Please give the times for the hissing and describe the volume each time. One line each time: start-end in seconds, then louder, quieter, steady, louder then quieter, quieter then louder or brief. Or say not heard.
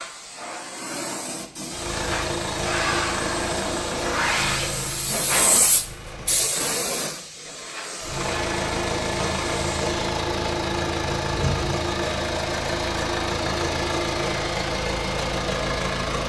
0.0-9.9 louder then quieter.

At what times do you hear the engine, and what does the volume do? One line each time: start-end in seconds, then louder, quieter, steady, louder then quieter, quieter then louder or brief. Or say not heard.
1.6-6.5 quieter
8.0-16.2 steady.